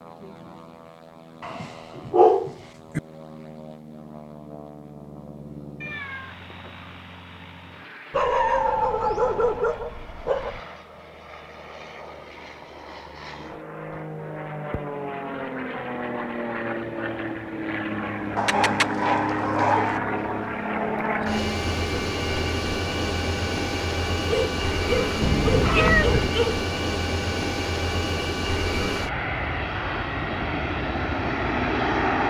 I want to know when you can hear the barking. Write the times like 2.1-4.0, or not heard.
1.4-3.0, 8.1-10.6, 18.4-20.0, 24.2-26.6.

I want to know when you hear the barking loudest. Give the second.
2 s.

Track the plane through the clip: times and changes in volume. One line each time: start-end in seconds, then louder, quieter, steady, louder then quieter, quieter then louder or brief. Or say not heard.
0.0-32.2 louder.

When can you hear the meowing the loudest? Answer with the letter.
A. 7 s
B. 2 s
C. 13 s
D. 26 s
D.